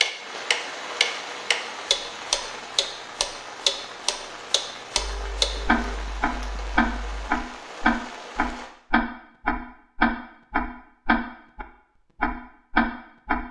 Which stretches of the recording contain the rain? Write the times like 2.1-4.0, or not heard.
0.0-8.7.